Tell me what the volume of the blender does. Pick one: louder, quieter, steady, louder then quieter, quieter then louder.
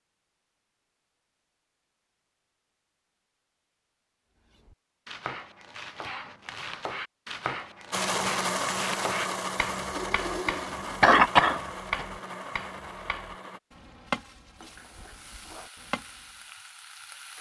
quieter.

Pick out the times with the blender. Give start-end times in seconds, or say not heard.
7.9-13.6.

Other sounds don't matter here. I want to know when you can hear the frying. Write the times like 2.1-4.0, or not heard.
14.6-17.3.